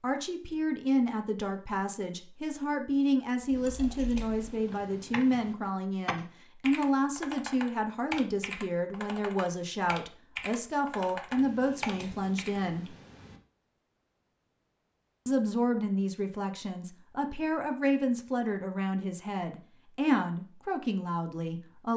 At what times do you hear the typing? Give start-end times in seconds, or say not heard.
3.5-12.6.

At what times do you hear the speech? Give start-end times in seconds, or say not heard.
0.0-12.9, 15.2-21.9.